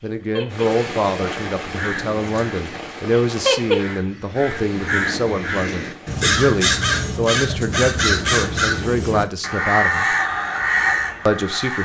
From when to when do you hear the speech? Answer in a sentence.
The speech can be heard from 0.0 to 10.2 s and from 11.2 to 11.8 s.